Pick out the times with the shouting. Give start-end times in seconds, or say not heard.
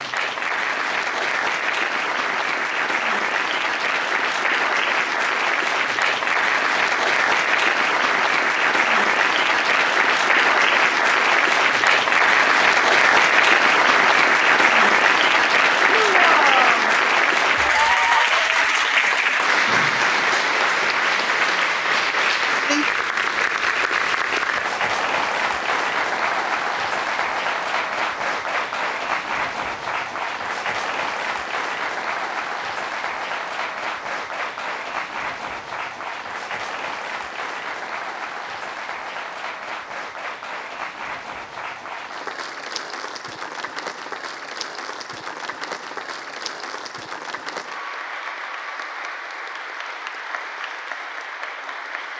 15.9-16.9.